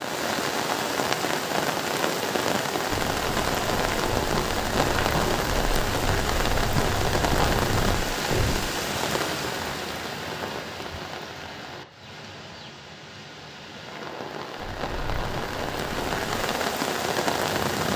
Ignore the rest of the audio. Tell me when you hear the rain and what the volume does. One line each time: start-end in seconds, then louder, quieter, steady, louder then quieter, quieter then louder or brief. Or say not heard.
0.0-17.9 quieter then louder.